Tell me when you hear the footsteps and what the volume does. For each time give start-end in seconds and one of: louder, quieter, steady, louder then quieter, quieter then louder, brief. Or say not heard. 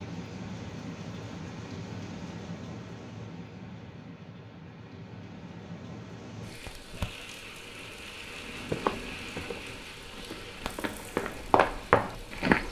8.4-12.6 quieter then louder.